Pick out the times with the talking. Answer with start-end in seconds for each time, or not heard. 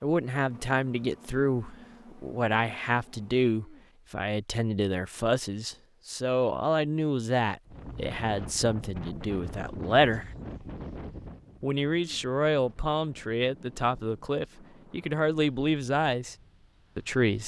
0.0-10.3, 11.6-16.4, 16.9-17.4.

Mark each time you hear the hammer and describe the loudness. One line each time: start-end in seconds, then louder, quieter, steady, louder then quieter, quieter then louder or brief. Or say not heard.
not heard.